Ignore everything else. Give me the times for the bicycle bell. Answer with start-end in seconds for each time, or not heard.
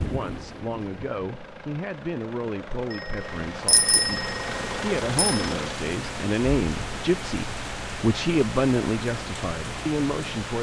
2.9-5.5.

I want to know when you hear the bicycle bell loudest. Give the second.
4 s.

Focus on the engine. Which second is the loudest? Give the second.
5 s.